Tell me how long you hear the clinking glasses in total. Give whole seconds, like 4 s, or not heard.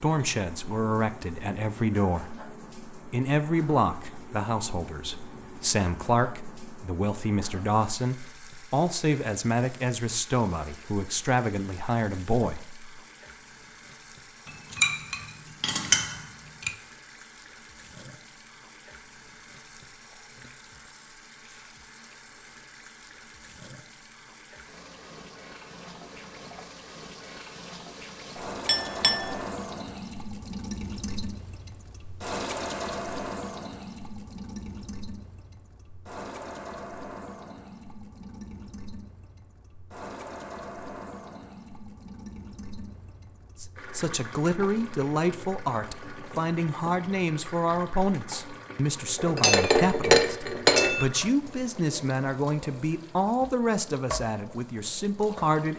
5 s.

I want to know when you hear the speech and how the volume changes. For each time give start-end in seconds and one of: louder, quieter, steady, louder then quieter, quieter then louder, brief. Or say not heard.
0.0-12.9 steady
43.6-55.7 steady.